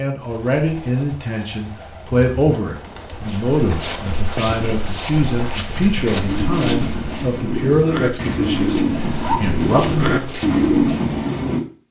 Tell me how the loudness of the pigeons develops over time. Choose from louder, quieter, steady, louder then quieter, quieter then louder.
louder.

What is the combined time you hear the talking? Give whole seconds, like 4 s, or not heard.
10 s.